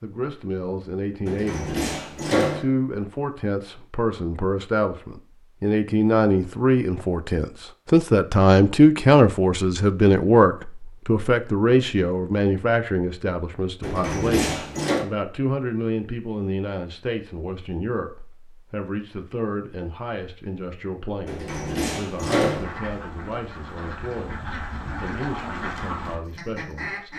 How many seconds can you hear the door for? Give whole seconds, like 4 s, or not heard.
4 s.